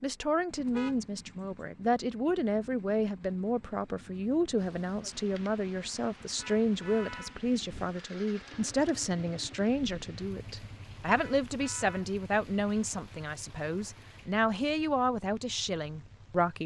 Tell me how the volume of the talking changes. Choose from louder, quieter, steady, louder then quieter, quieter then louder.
steady.